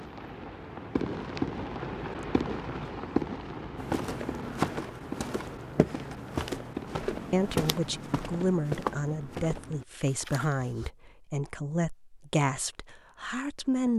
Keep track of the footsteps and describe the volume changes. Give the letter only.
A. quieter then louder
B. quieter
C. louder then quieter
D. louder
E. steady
B.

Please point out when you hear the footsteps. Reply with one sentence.
You can hear the footsteps from 3.8 to 10.9 s.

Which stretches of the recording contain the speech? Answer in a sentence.
You can hear the speech from 7.3 to 13.9 s.